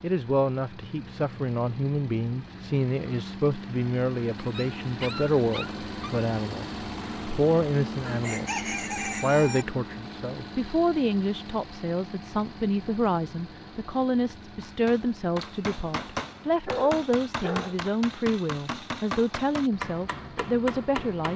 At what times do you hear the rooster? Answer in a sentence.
You can hear the rooster from 8.1 to 9.7 s.